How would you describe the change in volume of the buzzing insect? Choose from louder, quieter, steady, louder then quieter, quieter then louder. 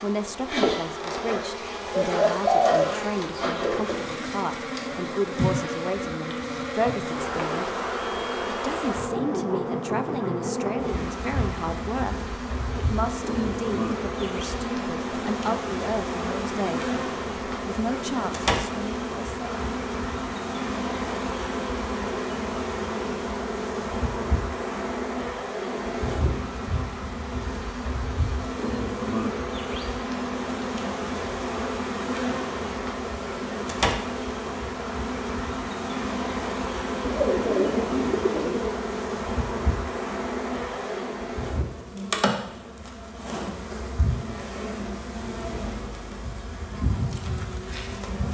steady.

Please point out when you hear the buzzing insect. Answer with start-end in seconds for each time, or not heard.
0.0-48.2.